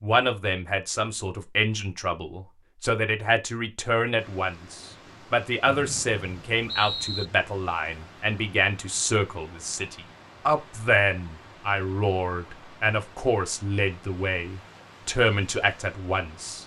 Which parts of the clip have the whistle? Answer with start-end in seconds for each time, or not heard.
5.7-7.2.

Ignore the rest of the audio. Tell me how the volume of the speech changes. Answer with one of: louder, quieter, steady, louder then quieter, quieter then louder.
steady.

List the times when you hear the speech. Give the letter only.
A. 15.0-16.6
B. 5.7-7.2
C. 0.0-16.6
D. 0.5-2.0
C.